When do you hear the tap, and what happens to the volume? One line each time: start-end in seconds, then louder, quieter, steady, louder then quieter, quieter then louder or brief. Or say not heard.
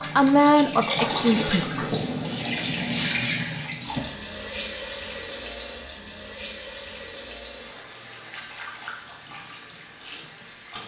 0.0-10.8 quieter.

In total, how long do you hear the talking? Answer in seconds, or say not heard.
2 s.